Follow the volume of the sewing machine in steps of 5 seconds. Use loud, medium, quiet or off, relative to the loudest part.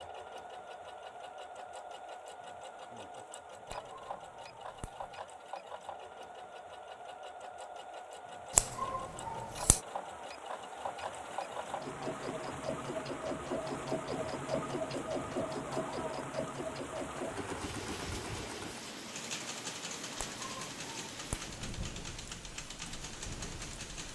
medium, medium, loud, loud, medium.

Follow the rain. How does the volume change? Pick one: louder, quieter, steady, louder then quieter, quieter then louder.
louder.